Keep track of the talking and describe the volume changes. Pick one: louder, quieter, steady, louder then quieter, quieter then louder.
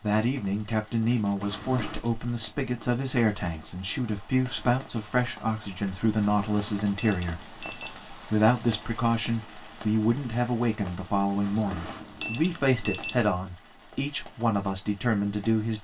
steady.